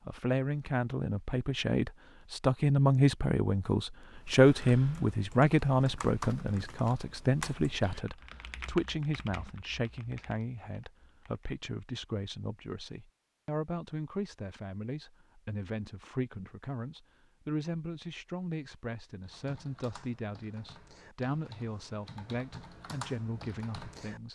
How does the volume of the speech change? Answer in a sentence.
The volume of the speech goes down.